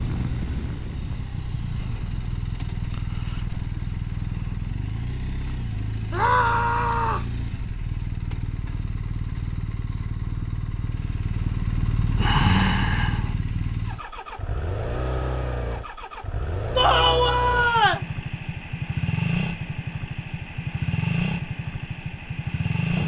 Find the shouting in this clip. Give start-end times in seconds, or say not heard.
6.1-7.3, 16.8-18.0.